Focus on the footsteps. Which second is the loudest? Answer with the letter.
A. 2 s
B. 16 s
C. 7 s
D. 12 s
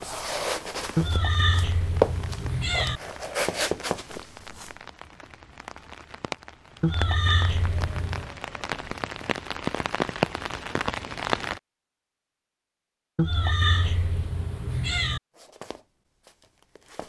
A.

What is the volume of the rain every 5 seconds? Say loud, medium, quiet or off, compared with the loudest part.
quiet, medium, loud, off.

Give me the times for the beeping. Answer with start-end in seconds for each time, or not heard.
not heard.